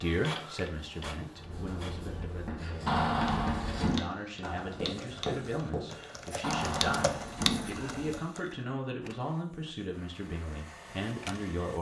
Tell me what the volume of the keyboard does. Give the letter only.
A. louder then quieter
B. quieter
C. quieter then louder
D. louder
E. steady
D.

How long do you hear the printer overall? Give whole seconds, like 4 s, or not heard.
5 s.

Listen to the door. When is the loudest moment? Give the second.
3 s.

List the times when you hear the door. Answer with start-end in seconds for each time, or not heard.
2.9-4.0, 6.4-8.2.